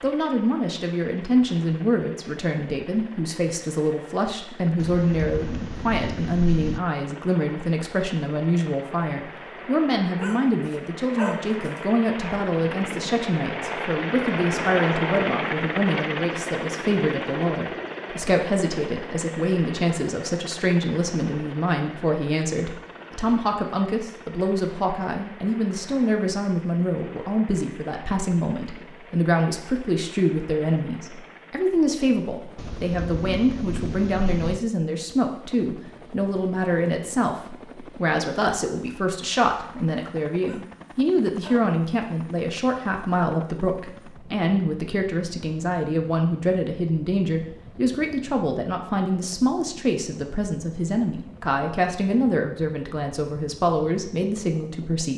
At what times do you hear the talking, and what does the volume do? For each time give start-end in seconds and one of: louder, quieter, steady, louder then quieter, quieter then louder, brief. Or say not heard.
0.0-55.1 steady.